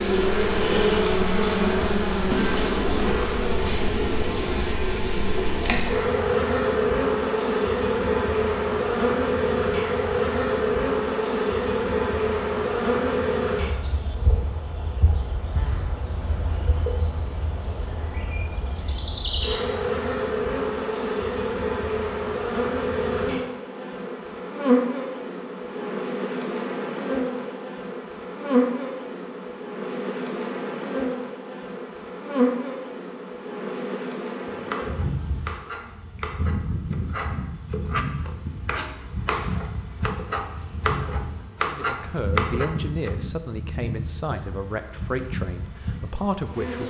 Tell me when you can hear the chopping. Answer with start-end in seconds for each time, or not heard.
34.5-43.2.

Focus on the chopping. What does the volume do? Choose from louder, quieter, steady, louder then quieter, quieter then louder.
louder.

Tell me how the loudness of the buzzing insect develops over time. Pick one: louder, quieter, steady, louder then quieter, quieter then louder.
quieter.